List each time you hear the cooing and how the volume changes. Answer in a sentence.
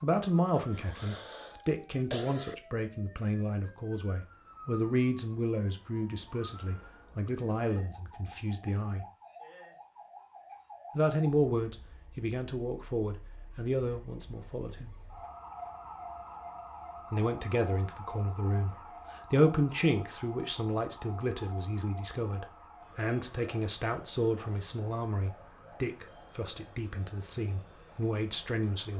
You can't hear the cooing here.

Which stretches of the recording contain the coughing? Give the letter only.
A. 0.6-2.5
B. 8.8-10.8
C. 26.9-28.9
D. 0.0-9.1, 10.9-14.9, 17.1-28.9
A.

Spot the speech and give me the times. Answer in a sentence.
The speech can be heard from 0.0 to 9.1 s, from 10.9 to 14.9 s and from 17.1 to 28.9 s.